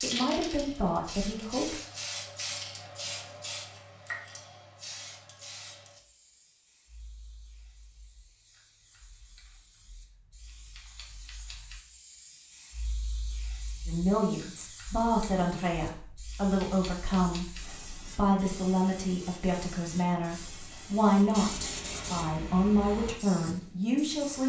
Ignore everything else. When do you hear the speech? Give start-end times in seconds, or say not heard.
0.0-1.8, 13.8-24.4.